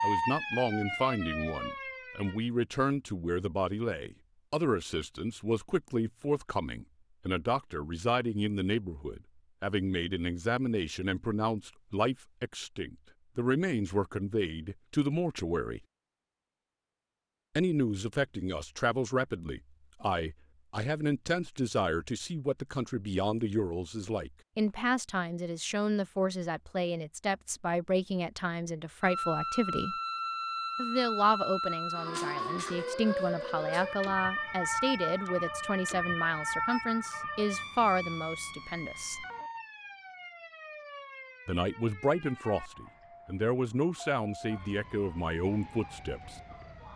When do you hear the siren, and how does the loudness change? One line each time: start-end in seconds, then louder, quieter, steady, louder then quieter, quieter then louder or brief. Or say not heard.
0.0-2.4 brief
29.0-46.9 quieter.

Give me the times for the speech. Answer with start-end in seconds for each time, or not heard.
0.0-15.8, 17.6-29.9, 30.8-39.2, 41.5-46.4.